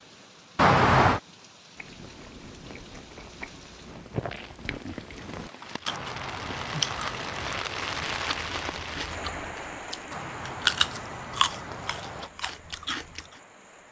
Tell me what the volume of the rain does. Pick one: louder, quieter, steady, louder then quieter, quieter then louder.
louder then quieter.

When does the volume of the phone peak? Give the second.
1 s.